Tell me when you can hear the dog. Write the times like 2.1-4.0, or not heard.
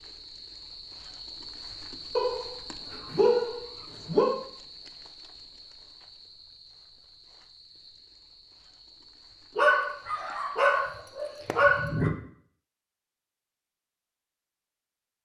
2.1-4.4, 9.6-12.2.